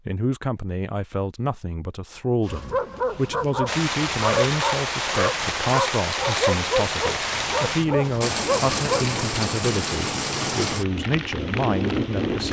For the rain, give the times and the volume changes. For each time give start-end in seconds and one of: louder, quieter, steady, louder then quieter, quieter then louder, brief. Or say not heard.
3.6-12.4 steady.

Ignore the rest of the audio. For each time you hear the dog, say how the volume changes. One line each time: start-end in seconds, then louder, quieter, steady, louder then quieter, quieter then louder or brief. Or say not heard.
2.5-9.2 steady.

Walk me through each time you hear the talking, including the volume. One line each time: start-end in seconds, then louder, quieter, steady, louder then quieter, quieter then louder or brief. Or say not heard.
0.1-12.4 steady.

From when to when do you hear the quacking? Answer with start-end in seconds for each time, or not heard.
not heard.